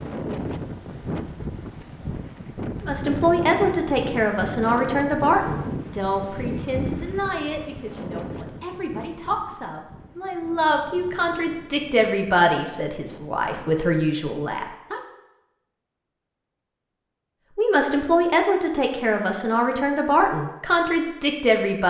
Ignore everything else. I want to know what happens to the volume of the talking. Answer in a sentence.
The volume of the talking goes down, then up.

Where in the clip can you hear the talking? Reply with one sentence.
You can hear the talking from 2.8 to 15.0 s and from 17.6 to 21.8 s.